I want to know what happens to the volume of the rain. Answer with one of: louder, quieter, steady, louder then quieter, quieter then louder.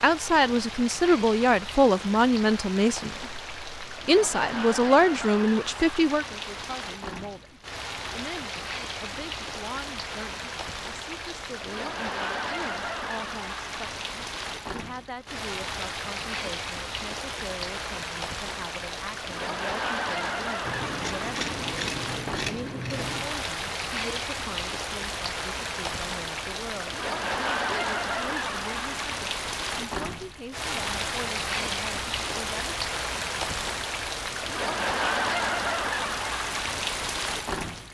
louder.